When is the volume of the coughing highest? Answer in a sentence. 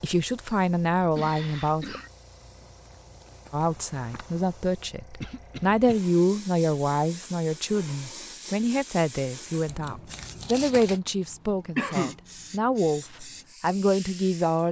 The loudest moment of the coughing is at 12 seconds.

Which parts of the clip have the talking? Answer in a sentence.
The talking can be heard from 0.0 to 2.0 s and from 3.5 to 14.6 s.